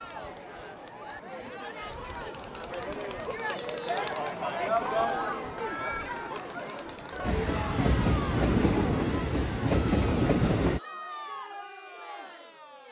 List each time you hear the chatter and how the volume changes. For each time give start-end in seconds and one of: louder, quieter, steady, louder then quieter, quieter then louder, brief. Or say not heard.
0.0-12.8 louder then quieter.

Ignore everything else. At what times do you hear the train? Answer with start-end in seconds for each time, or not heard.
7.2-10.8.